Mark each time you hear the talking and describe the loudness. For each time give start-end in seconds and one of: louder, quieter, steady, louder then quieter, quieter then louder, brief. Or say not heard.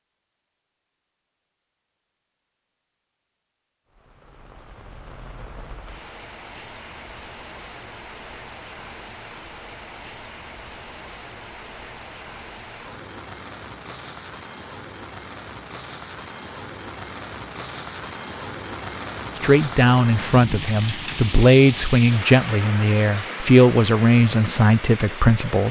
19.4-25.6 steady.